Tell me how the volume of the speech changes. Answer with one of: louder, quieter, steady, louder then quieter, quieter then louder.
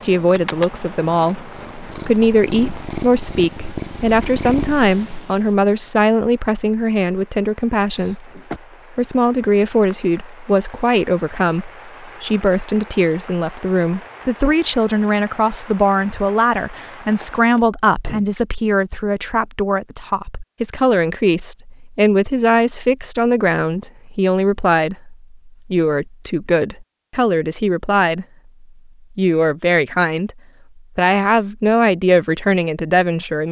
steady.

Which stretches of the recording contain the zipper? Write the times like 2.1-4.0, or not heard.
not heard.